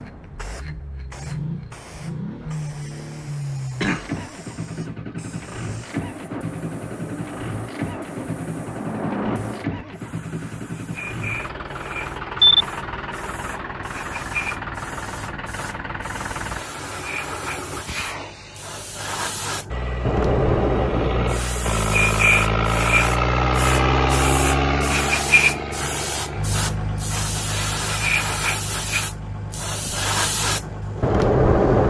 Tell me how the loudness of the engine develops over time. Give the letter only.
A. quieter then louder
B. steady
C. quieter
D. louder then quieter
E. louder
D.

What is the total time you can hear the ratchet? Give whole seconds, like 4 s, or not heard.
not heard.